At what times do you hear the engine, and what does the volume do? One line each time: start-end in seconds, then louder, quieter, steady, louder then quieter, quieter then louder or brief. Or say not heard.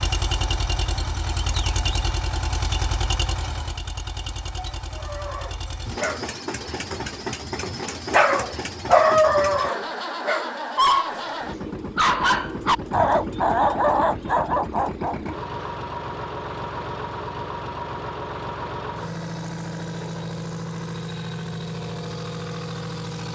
0.0-23.2 steady.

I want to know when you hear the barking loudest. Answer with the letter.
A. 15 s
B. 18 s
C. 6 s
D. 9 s
D.